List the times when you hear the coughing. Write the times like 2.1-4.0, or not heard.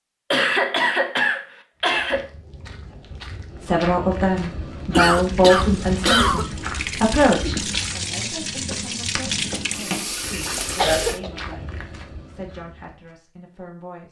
0.3-2.2, 4.9-6.5, 10.8-11.3.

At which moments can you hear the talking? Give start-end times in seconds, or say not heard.
3.6-14.0.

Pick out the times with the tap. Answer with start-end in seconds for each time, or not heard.
5.0-11.2.